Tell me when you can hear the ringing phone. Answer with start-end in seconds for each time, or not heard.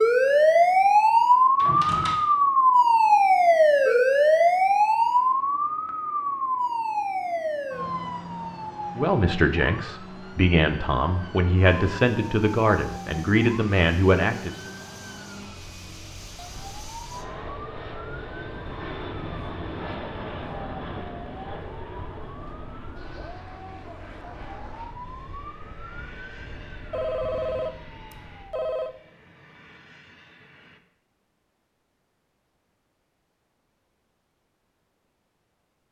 26.9-28.9.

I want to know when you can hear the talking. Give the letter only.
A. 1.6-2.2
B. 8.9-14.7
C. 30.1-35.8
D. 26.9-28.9
B.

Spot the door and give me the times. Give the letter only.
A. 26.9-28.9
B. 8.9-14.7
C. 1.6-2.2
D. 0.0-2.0
C.